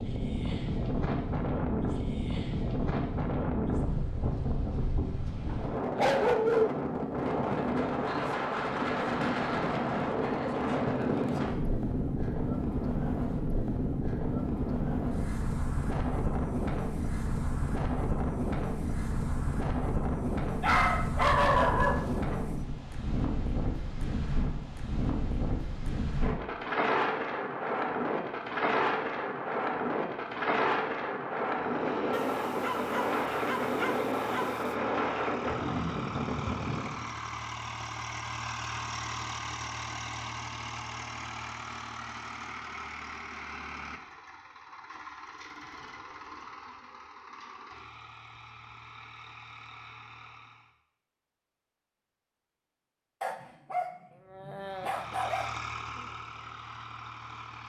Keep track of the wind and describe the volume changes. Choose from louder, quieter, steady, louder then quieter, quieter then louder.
steady.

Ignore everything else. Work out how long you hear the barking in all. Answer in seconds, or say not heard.
8 s.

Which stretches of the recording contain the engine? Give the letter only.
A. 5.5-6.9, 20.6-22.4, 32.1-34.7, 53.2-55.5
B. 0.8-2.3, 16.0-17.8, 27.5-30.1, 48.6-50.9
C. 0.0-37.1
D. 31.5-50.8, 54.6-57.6
D.